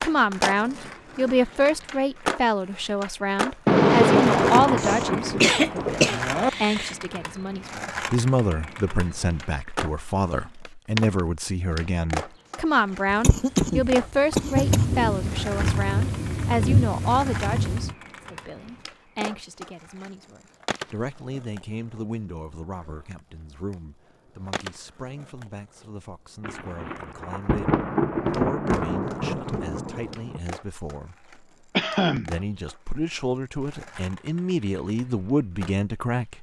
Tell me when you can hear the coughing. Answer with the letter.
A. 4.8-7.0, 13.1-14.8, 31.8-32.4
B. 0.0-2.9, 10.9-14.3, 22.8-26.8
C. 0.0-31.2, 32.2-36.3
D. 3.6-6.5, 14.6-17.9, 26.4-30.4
A.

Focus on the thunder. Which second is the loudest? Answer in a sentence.
The volume of the thunder peaks at 4 seconds.